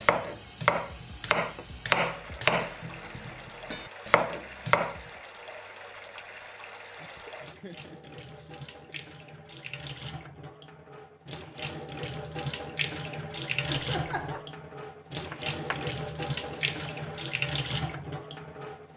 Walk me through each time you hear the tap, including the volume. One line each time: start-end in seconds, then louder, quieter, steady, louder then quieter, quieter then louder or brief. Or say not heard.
0.0-18.9 louder.